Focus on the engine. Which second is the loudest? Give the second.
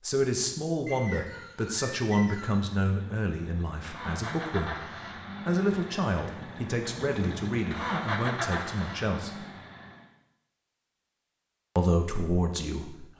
8 s.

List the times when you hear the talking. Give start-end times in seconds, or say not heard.
0.0-4.8, 5.5-9.4, 11.8-13.1.